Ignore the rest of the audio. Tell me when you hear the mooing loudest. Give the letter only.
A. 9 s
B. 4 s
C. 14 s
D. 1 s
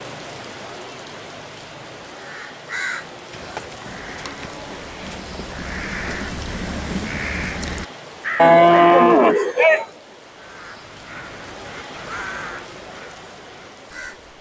A.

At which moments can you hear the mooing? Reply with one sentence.
You can hear the mooing from 3.3 to 5.2 s and from 8.3 to 9.8 s.